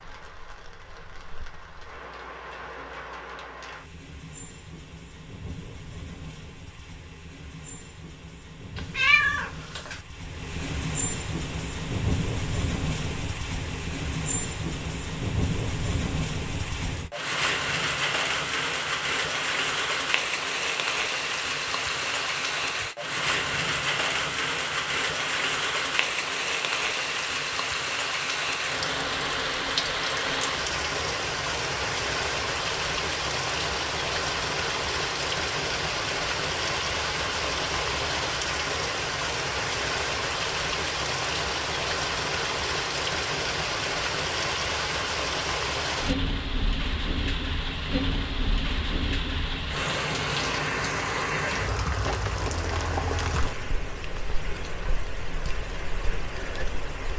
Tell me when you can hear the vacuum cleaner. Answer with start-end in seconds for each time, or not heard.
not heard.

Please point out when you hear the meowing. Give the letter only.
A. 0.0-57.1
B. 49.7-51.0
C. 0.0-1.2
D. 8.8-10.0
D.